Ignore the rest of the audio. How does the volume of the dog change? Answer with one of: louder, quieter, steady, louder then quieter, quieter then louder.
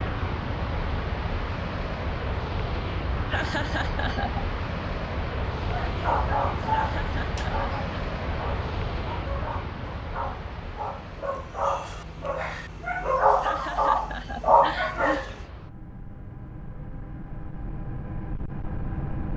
quieter then louder.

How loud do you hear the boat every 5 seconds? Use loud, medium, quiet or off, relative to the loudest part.
loud, loud, medium, medium.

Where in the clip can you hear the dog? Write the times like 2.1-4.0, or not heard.
5.6-15.4.